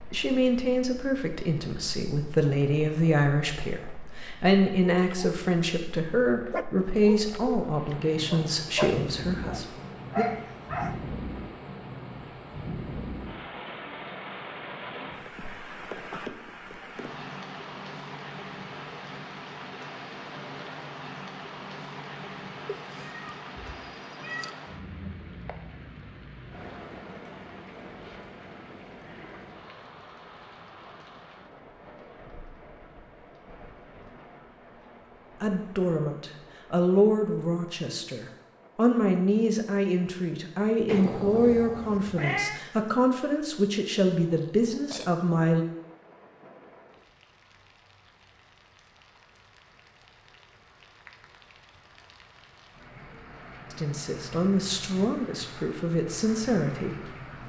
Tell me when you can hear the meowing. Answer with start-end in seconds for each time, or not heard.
22.7-24.5, 40.9-42.6.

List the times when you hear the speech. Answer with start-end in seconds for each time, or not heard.
0.1-10.2, 35.4-45.6, 53.7-57.4.